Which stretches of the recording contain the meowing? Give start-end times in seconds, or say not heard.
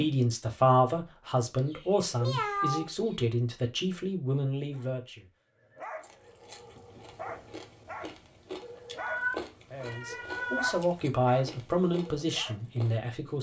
1.6-3.1, 8.9-10.8.